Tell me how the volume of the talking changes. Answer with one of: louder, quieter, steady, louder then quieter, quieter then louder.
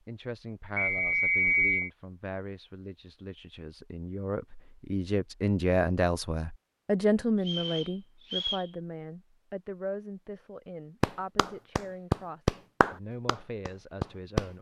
louder then quieter.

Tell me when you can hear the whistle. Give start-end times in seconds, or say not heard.
0.8-1.9, 7.5-8.7.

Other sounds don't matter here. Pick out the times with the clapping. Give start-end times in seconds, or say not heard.
11.0-14.4.